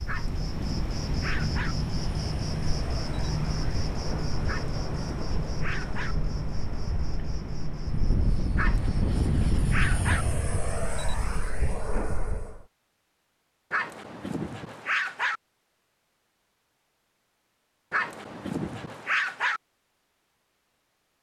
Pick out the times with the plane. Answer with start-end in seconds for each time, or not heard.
0.0-12.7.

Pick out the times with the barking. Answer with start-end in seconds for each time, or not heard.
0.1-1.8, 4.5-6.2, 8.6-10.2, 13.7-15.4, 17.9-19.6.